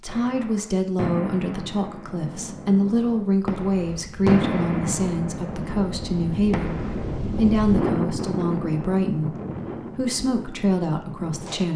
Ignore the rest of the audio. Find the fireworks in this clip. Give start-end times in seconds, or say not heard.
0.1-7.2.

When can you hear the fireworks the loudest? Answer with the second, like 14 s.
4 s.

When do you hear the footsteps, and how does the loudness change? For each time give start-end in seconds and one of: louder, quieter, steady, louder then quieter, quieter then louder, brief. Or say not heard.
not heard.